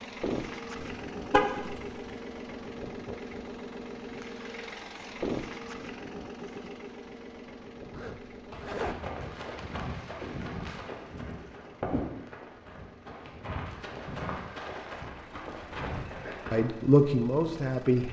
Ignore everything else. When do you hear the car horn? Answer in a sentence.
You can hear the car horn from 0.8 to 1.9 s.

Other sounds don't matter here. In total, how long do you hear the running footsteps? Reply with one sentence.
The running footsteps can be heard for 8 seconds in total.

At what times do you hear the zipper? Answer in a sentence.
You can hear the zipper from 7.9 to 9.0 s.